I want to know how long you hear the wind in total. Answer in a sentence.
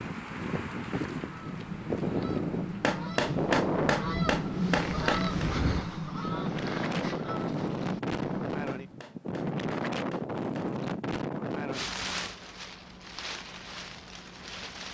The wind can be heard for 15 seconds in total.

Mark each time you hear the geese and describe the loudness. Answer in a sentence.
The geese can be heard from 1.2 to 9.0 s, getting louder then quieter.